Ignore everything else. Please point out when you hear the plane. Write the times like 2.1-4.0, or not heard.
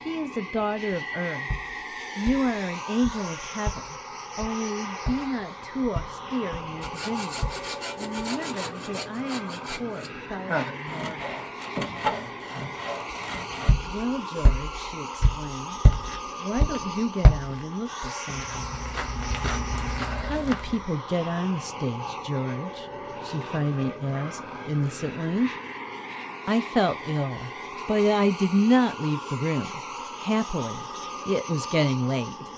0.0-32.5.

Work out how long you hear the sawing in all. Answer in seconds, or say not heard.
7 s.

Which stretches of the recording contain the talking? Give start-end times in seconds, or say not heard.
0.1-1.5, 2.1-11.4, 13.8-15.8, 16.4-18.8, 20.2-25.5, 26.4-32.4.